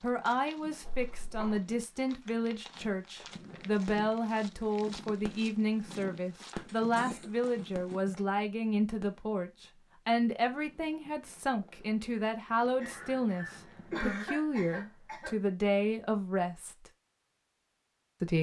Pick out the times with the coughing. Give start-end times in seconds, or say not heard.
0.8-1.6, 6.5-8.2, 12.8-15.3.